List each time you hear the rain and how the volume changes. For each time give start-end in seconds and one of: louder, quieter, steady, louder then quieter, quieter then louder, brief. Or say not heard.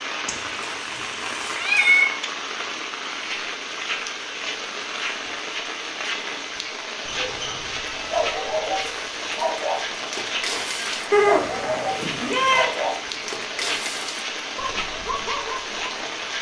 0.0-16.3 steady.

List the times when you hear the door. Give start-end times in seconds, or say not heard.
not heard.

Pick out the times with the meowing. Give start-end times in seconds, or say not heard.
0.2-2.0, 7.0-8.9, 11.1-12.7.